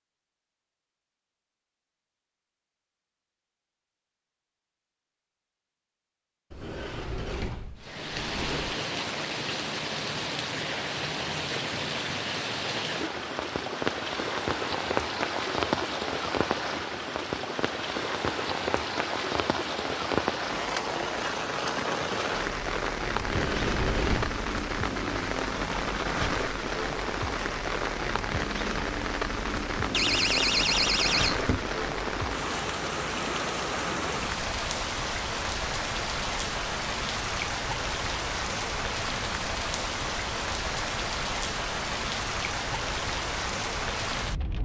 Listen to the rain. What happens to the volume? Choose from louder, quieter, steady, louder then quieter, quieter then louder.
steady.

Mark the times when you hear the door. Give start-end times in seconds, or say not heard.
6.5-8.8, 23.1-24.4, 29.9-31.7.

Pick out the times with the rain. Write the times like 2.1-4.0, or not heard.
7.8-44.5.